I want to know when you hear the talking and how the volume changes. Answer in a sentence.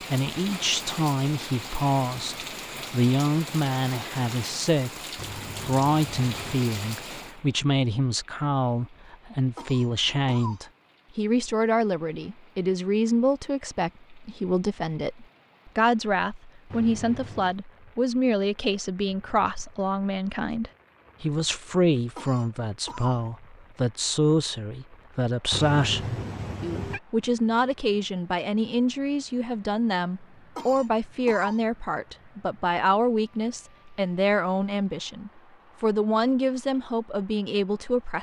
The talking can be heard from 0.1 to 38.1 s, at a steady volume.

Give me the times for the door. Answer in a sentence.
You can't hear the door here.